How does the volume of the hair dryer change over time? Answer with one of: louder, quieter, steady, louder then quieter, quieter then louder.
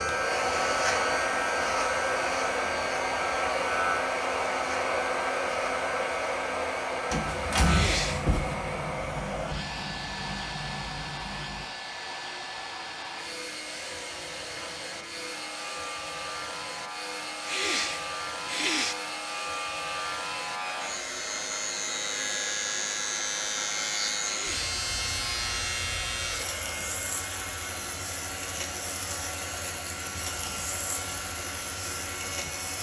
quieter.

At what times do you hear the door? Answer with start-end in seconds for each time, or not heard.
7.1-8.6.